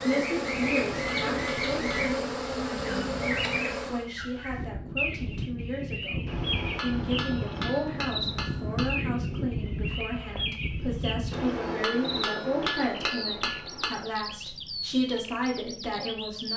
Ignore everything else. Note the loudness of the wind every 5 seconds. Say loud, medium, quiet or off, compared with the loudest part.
medium, loud, loud, off.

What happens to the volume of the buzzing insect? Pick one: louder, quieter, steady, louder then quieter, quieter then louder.
steady.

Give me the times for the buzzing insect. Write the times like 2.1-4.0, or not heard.
0.0-4.1.